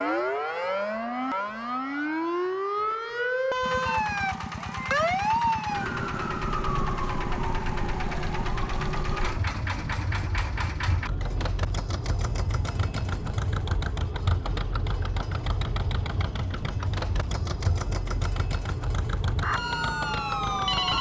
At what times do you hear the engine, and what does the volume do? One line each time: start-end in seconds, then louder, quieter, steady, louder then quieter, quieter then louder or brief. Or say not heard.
3.6-20.9 steady.